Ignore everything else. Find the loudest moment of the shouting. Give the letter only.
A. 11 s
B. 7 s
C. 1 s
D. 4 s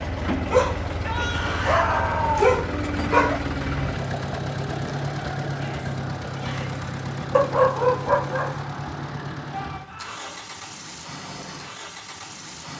C.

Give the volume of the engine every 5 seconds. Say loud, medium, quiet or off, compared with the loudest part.
loud, loud, medium.